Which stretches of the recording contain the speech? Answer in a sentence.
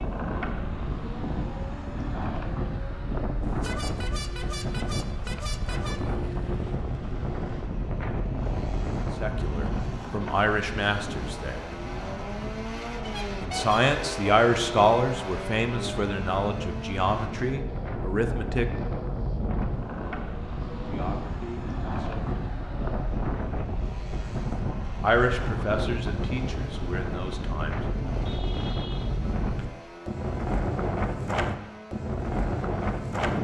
The speech can be heard from 9.2 to 11.6 s, from 13.4 to 18.6 s, from 20.9 to 22.4 s and from 25.0 to 27.8 s.